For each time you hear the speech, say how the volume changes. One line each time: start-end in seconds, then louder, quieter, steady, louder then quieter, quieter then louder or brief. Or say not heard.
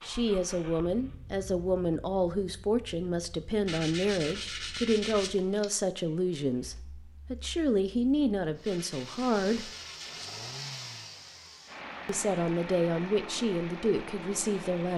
0.0-9.7 steady
12.1-14.9 brief.